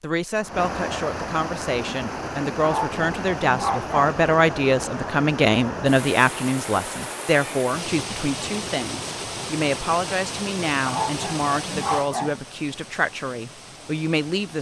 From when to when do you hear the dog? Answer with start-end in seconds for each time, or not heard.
2.6-4.2, 10.8-12.4.